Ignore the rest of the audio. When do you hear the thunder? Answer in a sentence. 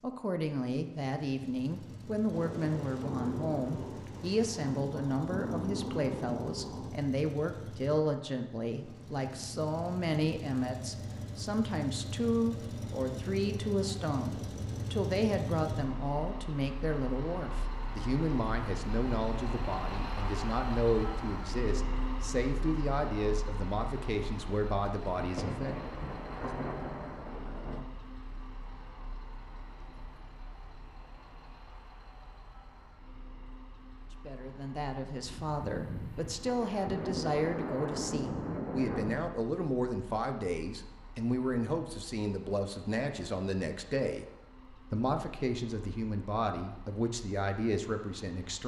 The thunder can be heard from 2.3 to 7.0 s, from 25.0 to 27.9 s and from 35.2 to 39.3 s.